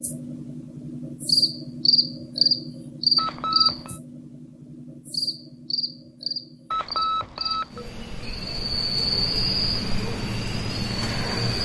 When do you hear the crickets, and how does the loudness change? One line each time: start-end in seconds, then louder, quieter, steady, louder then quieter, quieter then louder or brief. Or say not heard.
0.0-11.6 quieter then louder.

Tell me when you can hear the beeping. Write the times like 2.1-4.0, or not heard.
3.1-4.0, 6.7-7.8.